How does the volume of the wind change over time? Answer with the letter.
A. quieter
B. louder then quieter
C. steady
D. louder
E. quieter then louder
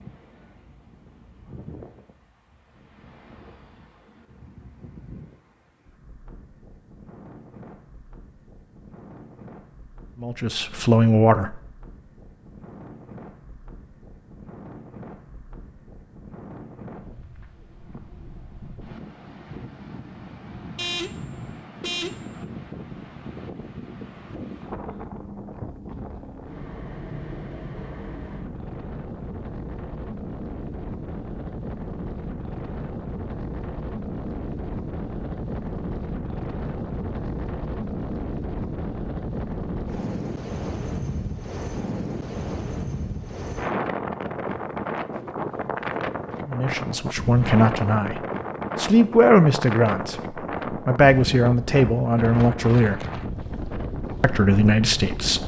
D.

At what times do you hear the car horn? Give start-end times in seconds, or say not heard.
20.8-22.4.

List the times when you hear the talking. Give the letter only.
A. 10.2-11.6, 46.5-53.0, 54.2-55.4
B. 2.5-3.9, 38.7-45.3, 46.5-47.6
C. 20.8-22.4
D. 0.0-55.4
A.